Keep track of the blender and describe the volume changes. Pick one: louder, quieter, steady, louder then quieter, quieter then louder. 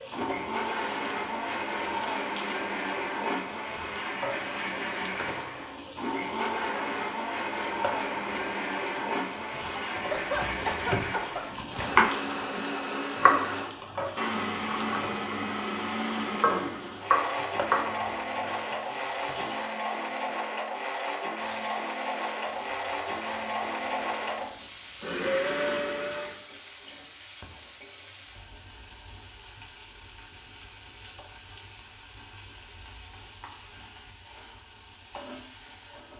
steady.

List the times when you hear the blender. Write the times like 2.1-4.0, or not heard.
0.0-26.4.